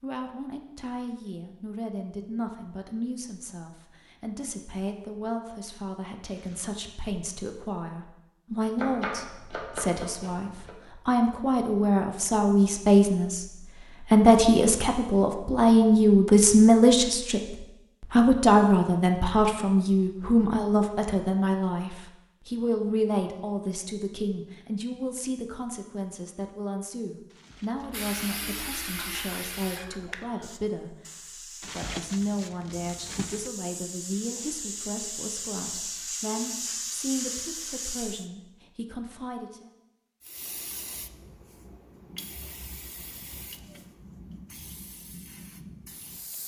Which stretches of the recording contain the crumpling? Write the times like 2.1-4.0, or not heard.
6.3-6.8, 27.2-27.9, 31.6-33.5.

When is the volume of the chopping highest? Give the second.
9 s.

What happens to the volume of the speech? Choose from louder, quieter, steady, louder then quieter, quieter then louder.
louder then quieter.